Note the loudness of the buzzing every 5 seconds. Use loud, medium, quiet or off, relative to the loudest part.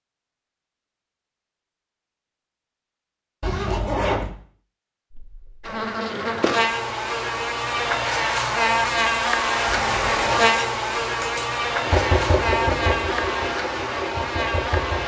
off, loud, loud.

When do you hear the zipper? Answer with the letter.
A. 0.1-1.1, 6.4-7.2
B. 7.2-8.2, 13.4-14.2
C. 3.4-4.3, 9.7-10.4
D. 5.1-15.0
C.